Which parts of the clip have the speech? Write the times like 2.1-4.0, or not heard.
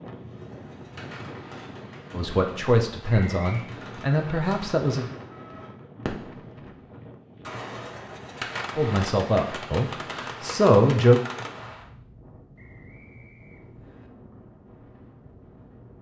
2.1-5.0, 8.8-11.2.